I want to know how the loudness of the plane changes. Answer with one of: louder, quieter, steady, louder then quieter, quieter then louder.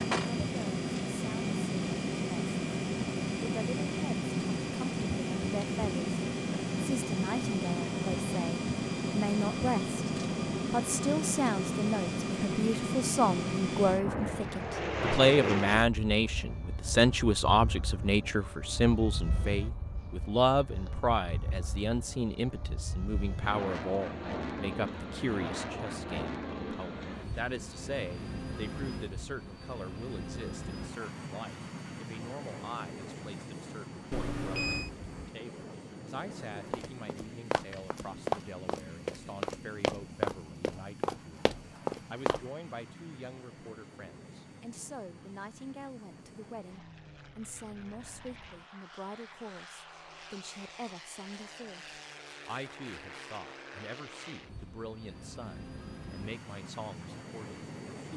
quieter.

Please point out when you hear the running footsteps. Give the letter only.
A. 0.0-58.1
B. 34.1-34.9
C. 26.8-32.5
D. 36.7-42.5
D.